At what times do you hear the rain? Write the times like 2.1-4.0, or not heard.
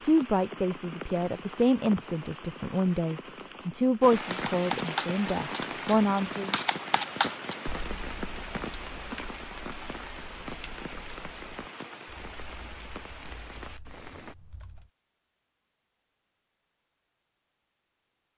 0.0-14.3.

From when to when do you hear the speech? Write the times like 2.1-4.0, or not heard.
0.0-6.5.